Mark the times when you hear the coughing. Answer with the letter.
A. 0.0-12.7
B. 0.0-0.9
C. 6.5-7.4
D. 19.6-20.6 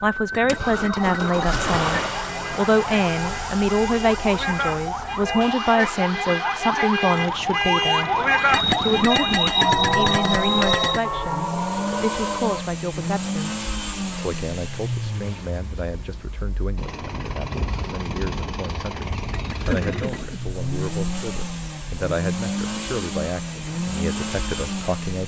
D.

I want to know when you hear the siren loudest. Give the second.
8 s.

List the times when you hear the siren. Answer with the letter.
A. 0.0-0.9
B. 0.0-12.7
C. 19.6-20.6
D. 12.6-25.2
B.